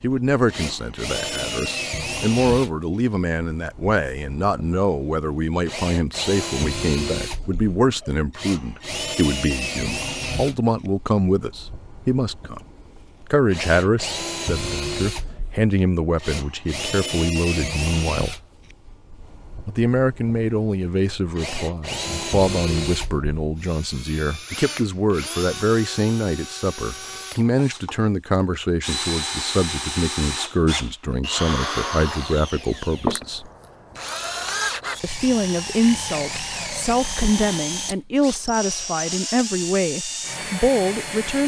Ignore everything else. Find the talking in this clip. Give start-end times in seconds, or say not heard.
0.0-12.6, 13.3-18.4, 19.6-33.5, 35.0-41.4.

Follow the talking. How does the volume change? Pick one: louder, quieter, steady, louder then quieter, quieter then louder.
steady.